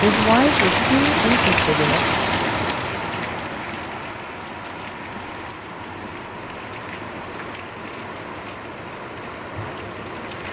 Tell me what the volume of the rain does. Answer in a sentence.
The volume of the rain goes down.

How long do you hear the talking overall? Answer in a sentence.
You can hear the talking for 2 seconds altogether.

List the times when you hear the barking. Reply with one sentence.
The barking can't be heard in this clip.